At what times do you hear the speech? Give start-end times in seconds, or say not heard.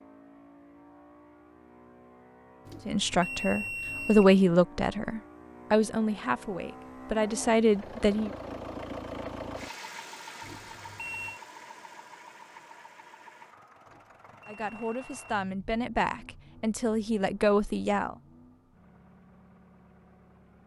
2.9-8.3, 14.4-18.1.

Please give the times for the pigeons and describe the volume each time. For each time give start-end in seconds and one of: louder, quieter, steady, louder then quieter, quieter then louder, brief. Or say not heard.
not heard.